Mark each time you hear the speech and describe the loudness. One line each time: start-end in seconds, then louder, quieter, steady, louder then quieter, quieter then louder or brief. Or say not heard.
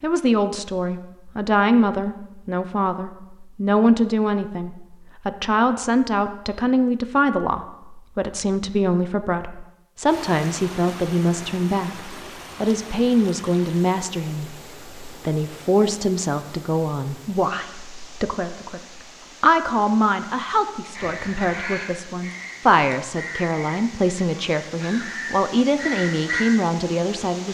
0.0-27.4 steady.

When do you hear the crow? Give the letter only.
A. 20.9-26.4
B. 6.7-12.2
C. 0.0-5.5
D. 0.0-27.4
A.